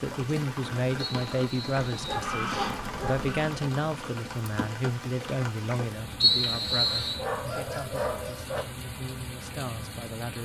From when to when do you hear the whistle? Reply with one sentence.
You can hear the whistle from 1.0 to 2.2 s and from 6.2 to 7.2 s.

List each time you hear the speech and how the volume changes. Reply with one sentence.
You can hear the speech from 0.0 to 10.4 s, getting quieter.